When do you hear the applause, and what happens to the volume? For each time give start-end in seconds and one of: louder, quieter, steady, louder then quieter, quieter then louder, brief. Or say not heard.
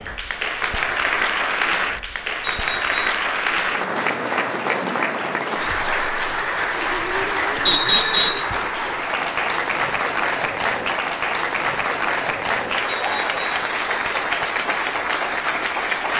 0.0-16.1 steady.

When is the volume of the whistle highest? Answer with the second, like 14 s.
8 s.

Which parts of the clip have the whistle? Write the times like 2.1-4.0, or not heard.
2.4-3.2, 7.7-8.5, 12.9-13.4.